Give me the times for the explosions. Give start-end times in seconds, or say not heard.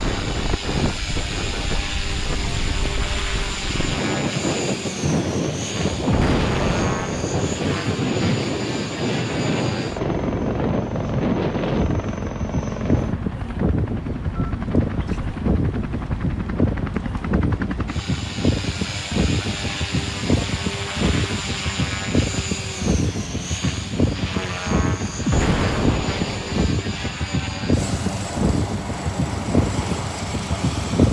6.0-7.2, 25.2-26.6.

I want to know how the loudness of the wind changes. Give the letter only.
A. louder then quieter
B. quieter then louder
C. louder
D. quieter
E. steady
E.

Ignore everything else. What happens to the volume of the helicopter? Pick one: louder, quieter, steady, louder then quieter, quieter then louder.
steady.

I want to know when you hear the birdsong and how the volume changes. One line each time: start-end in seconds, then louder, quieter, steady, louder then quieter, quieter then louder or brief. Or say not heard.
not heard.